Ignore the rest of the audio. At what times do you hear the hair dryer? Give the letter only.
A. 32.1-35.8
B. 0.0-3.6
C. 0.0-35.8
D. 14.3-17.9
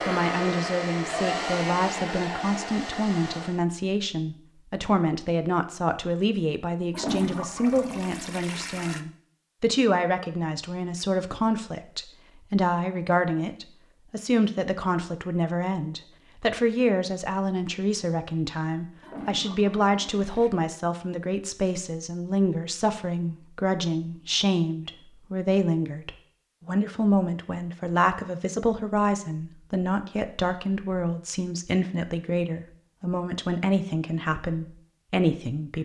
B.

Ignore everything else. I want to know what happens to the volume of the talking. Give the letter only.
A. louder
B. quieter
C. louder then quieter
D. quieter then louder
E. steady
E.